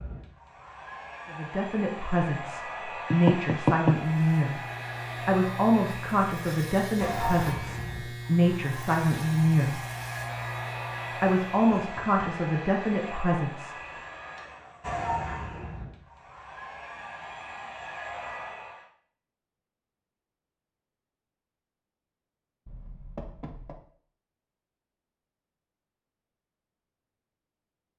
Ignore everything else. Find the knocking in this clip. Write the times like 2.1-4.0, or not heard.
3.1-4.0, 11.8-12.2, 22.6-23.9.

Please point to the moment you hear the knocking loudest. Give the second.
4 s.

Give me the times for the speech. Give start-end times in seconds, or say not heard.
1.3-4.7, 5.2-9.8, 11.2-13.8.